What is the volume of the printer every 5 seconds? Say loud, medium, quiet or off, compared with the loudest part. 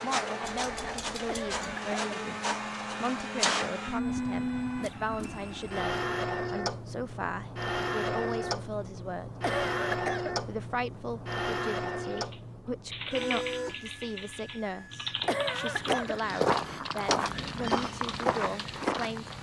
loud, loud, loud, quiet.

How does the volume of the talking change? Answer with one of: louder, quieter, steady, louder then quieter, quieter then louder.
steady.